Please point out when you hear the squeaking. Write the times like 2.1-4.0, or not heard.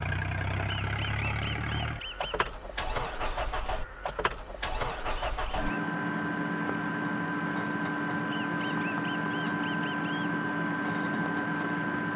0.7-2.5, 5.2-5.8, 8.3-10.3.